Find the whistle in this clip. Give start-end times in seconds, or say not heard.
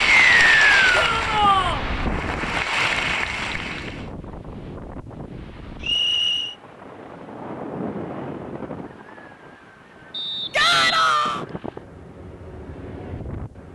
0.1-0.9, 5.8-6.5, 10.1-11.1.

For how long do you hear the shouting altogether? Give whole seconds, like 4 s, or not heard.
2 s.